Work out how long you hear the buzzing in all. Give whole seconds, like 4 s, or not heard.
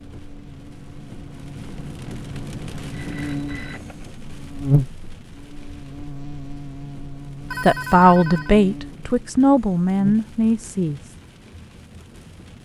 10 s.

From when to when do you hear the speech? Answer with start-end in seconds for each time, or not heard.
7.6-11.2.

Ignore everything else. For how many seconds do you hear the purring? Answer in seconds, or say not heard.
not heard.